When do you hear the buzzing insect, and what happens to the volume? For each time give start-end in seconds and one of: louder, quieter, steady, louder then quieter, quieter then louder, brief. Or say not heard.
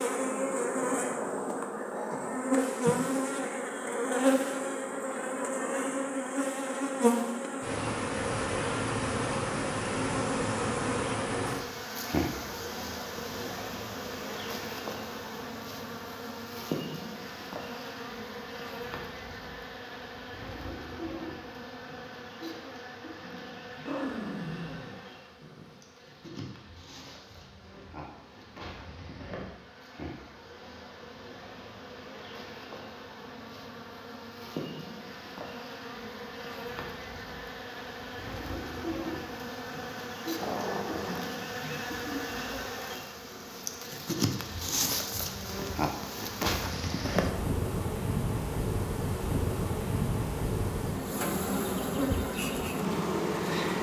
0.0-53.7 quieter then louder.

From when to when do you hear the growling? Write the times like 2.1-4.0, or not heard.
0.8-2.4, 23.7-25.8, 40.4-41.3.